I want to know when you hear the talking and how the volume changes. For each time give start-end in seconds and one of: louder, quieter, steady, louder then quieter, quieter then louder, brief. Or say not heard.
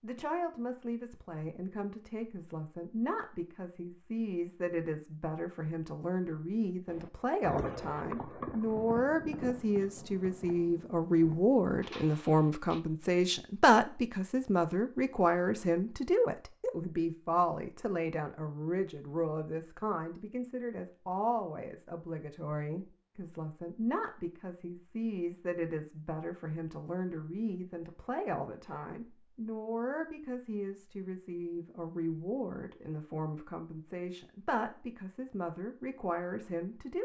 0.0-37.0 louder then quieter.